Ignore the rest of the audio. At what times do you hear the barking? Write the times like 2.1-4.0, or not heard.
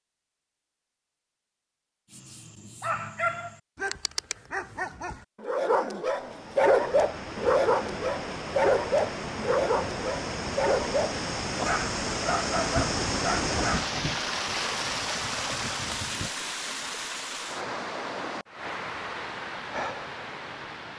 2.1-13.9.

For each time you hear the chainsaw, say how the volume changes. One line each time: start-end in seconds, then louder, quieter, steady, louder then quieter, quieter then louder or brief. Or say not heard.
not heard.